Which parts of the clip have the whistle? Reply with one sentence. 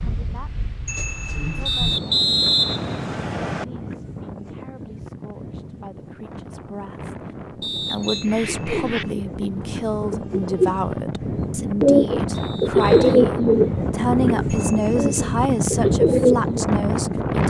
You can hear the whistle from 1.6 to 3.6 s, from 7.6 to 8.2 s and from 12.3 to 13.2 s.